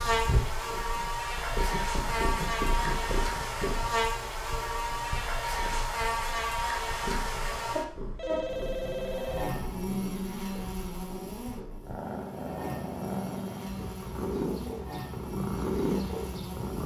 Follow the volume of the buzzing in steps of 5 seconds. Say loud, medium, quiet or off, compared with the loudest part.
loud, loud, medium, medium.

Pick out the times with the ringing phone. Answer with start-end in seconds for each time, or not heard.
8.2-9.6.